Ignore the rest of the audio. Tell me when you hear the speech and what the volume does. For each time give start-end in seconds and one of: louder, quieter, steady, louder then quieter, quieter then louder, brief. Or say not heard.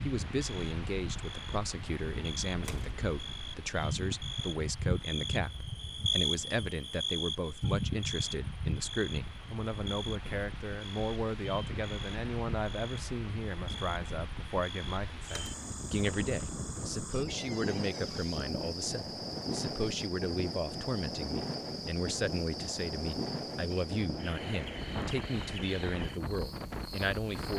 0.0-27.5 steady.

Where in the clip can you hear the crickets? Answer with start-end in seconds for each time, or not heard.
0.0-27.5.